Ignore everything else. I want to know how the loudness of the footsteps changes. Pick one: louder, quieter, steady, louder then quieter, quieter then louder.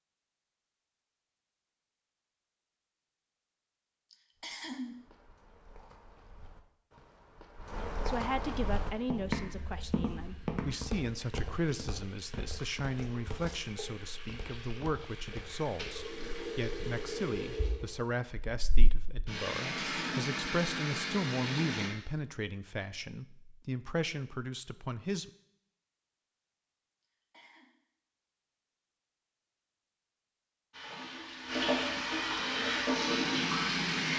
louder then quieter.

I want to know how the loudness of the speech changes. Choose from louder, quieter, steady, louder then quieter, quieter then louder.
steady.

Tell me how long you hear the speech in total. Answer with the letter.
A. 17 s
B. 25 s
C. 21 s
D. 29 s
A.